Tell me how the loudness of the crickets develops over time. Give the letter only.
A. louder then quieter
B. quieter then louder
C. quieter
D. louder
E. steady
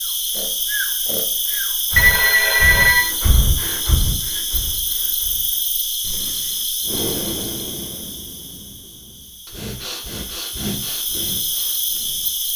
B.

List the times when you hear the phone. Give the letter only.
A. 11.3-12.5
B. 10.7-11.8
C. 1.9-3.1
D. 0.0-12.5
C.